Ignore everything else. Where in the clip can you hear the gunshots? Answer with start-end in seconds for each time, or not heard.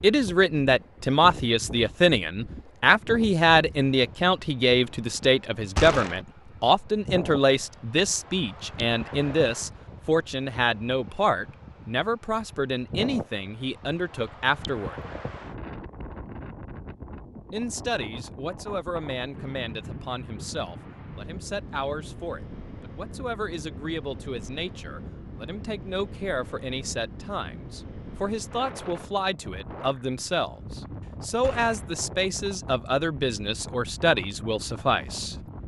5.8-6.2, 31.4-31.9.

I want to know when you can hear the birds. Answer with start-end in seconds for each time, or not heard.
not heard.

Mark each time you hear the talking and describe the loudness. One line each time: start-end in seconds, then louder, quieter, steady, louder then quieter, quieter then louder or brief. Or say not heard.
0.0-15.0 quieter
17.5-35.4 louder.